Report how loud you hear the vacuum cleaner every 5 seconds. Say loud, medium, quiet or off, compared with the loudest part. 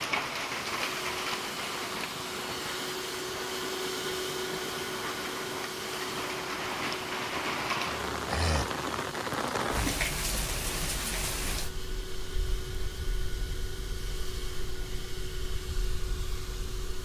loud, loud, medium, medium.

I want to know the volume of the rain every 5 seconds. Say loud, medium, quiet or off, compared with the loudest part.
loud, loud, medium, quiet.